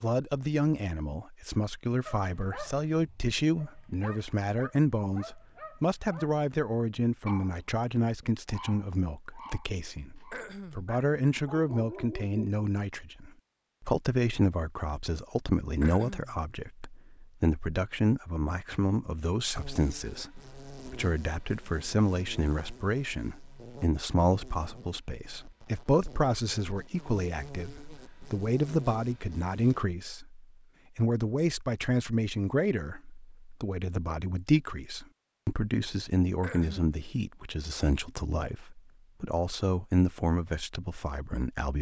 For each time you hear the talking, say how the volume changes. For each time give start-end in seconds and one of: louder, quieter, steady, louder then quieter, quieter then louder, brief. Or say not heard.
0.0-41.7 steady.